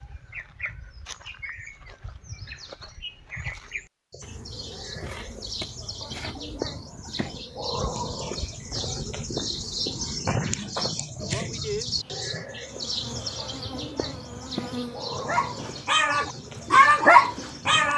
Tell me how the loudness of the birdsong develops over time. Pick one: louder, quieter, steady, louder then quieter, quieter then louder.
louder then quieter.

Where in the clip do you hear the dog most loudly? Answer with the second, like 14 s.
17 s.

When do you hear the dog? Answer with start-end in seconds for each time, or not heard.
15.2-17.9.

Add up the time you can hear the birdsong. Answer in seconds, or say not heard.
18 s.